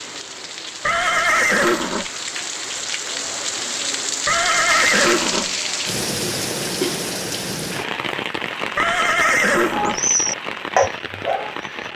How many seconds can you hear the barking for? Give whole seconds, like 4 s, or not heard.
2 s.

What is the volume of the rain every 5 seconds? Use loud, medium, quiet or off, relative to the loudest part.
loud, loud, medium.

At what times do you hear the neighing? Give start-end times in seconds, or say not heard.
0.8-2.1, 4.2-5.5, 8.8-10.0.